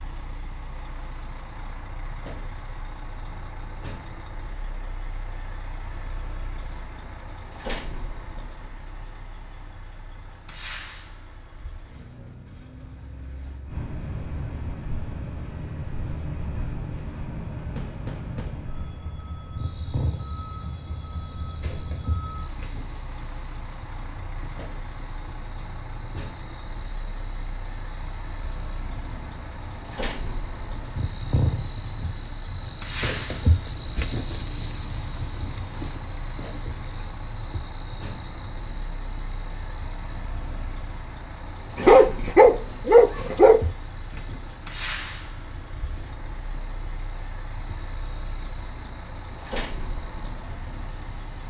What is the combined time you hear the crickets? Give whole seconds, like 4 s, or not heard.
38 s.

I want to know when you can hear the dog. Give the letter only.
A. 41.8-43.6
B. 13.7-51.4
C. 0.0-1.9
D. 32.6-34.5
A.